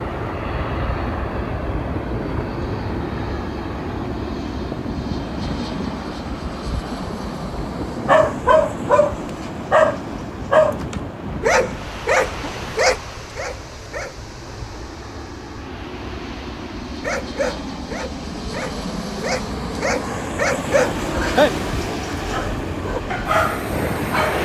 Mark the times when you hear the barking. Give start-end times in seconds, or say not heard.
8.1-14.2, 17.0-24.4.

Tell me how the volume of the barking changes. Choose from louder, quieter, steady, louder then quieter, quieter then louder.
quieter then louder.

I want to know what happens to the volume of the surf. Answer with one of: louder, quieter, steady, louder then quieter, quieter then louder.
quieter then louder.